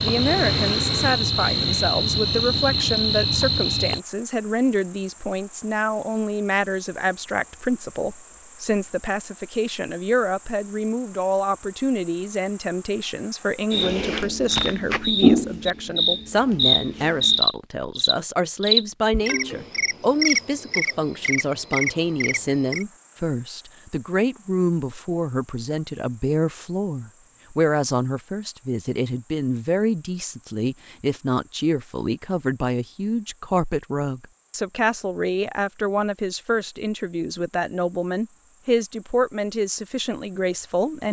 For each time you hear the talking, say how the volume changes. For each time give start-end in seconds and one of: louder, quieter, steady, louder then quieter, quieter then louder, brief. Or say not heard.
0.0-41.0 steady.